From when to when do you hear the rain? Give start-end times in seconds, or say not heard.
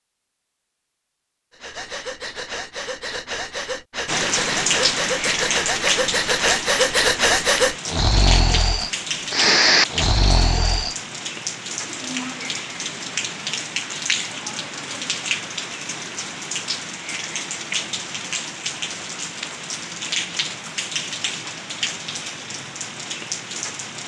4.0-24.0.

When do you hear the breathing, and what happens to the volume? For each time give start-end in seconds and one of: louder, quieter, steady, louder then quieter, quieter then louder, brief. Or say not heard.
1.5-10.9 louder.